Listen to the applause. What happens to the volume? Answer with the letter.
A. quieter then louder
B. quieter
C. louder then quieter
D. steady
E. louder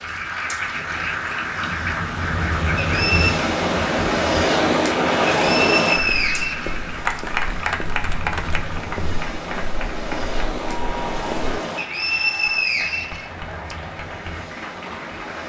B.